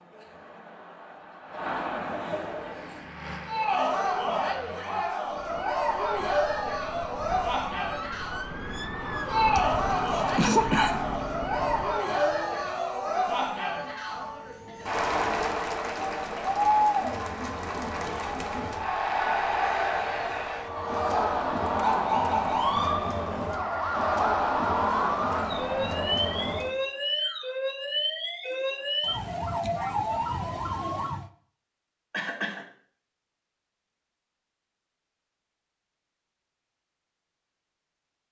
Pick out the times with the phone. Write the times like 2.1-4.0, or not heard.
not heard.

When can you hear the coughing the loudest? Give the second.
11 s.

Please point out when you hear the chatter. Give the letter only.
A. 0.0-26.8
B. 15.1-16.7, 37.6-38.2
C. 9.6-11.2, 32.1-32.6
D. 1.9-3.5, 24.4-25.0
A.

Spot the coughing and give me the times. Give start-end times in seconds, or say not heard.
9.6-11.2, 32.1-32.6.